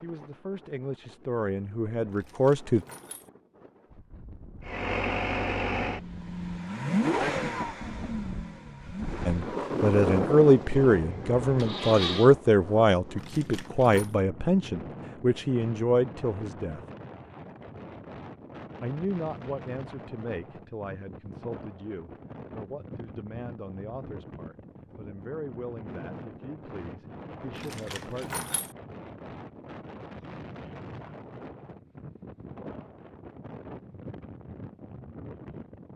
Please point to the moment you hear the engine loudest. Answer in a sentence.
The volume of the engine peaks at 7 seconds.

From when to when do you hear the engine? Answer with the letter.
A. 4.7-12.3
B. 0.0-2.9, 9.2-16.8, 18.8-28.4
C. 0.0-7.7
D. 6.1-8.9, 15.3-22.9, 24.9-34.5
A.